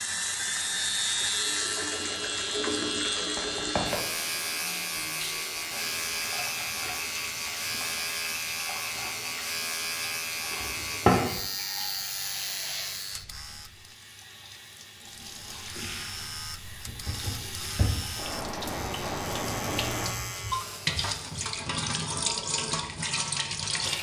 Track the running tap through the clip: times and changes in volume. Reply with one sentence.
The running tap can be heard from 0.0 to 23.9 s, getting quieter then louder.